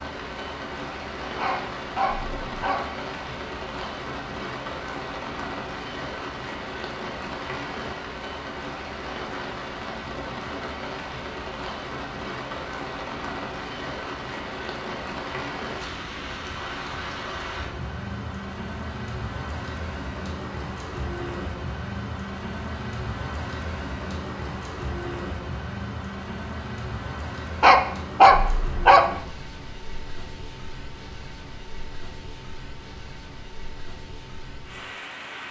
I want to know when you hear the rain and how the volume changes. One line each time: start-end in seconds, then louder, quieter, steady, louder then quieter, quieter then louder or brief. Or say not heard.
0.0-35.4 quieter.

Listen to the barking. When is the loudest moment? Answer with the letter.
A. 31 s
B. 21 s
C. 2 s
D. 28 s
D.